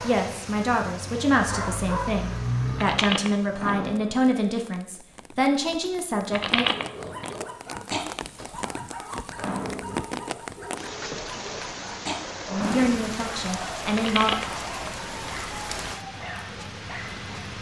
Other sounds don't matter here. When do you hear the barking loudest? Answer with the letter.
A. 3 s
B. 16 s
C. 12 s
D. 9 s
A.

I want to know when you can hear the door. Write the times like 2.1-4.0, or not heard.
3.5-4.2, 9.3-10.0, 12.5-13.1.